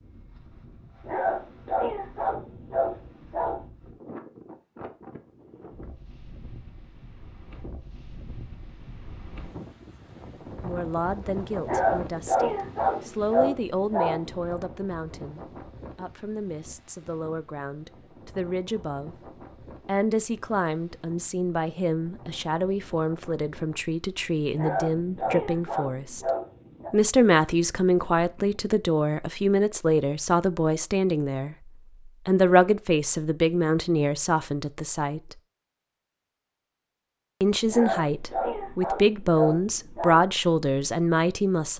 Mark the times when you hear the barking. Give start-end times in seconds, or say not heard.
1.1-3.6, 11.6-14.6, 24.6-26.9, 37.6-40.2.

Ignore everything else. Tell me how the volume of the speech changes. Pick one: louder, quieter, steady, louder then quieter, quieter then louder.
louder.